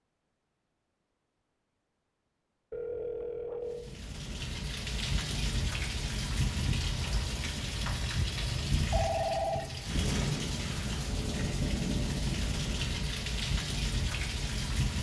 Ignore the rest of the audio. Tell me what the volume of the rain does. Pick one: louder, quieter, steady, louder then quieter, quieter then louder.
steady.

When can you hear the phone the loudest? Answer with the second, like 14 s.
9 s.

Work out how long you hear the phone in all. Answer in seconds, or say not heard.
2 s.